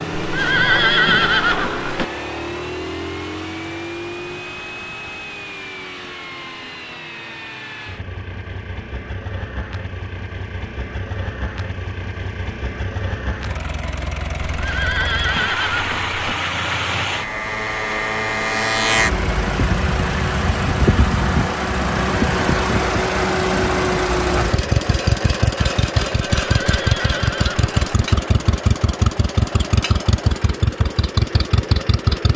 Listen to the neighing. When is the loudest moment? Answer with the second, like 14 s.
1 s.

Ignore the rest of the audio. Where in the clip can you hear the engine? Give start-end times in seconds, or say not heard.
0.0-32.3.